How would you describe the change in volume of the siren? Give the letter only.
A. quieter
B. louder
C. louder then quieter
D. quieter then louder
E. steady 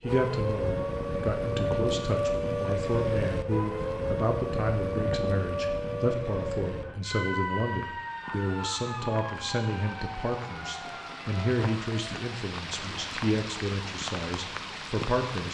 A.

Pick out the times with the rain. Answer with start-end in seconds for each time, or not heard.
7.3-15.4.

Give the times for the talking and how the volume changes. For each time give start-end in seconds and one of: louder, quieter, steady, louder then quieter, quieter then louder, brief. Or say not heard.
0.0-15.4 steady.